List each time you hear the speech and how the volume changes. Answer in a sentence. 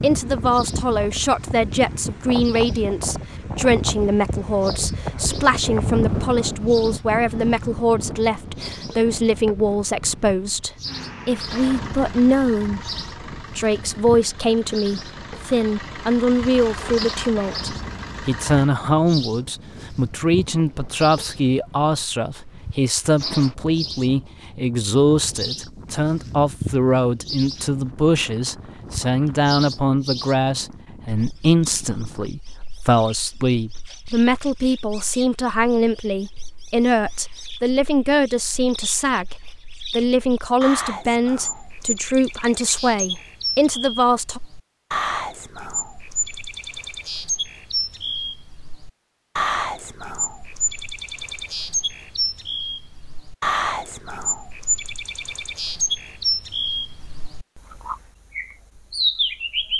You can hear the speech from 0.0 to 12.9 s, at a steady volume; and from 13.5 to 44.4 s, at a steady volume.